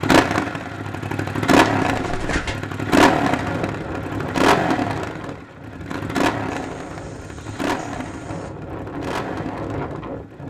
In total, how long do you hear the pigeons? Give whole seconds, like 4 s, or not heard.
3 s.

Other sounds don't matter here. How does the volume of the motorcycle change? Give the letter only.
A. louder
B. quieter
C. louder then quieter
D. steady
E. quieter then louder
B.